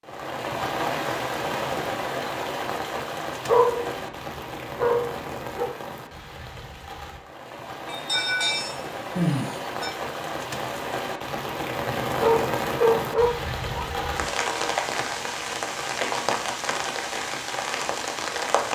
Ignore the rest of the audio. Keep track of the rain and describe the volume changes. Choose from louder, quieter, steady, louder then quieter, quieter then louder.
quieter then louder.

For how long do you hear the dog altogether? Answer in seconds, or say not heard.
4 s.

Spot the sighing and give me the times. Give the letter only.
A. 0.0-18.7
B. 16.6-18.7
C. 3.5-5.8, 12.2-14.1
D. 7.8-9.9
D.